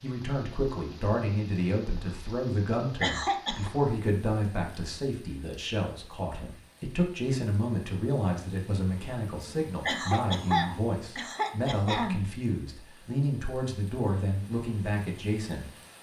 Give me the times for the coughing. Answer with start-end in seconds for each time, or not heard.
3.0-3.7, 9.8-12.2.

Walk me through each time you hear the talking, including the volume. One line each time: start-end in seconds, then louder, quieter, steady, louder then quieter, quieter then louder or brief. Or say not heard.
0.0-15.7 steady.